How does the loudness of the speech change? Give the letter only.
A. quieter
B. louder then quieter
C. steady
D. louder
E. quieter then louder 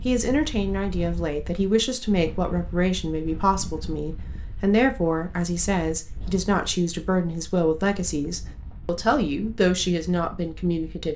C.